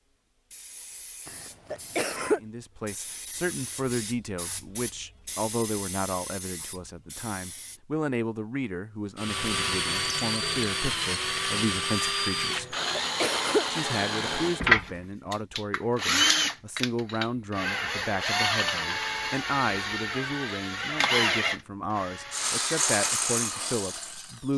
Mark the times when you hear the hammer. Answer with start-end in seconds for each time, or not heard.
not heard.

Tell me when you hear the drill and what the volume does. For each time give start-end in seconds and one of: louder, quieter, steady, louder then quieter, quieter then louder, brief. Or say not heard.
9.2-24.5 steady.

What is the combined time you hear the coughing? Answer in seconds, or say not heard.
2 s.